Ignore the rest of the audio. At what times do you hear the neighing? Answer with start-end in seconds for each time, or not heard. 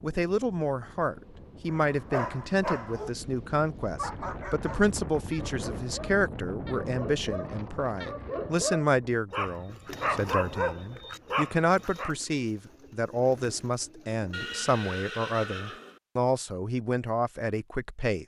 14.3-16.0.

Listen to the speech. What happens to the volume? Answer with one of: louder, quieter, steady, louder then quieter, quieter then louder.
steady.